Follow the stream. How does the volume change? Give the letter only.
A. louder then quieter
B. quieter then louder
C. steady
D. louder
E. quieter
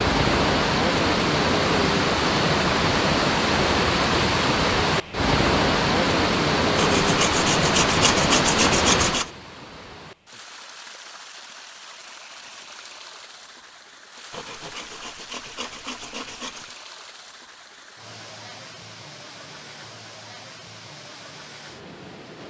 E.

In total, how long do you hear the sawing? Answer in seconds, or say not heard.
5 s.